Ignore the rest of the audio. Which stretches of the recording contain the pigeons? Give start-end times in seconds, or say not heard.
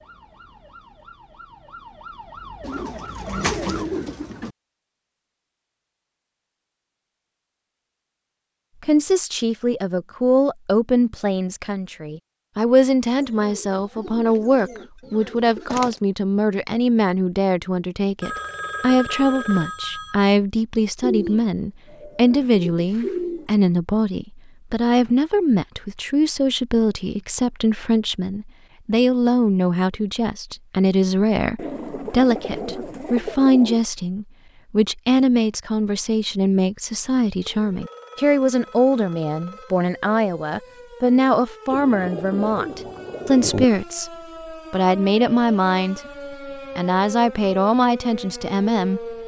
2.6-4.5, 13.2-16.0, 21.0-23.5, 31.6-33.8, 41.7-43.6.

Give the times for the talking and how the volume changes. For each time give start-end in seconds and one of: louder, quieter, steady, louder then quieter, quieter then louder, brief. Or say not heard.
8.8-49.1 steady.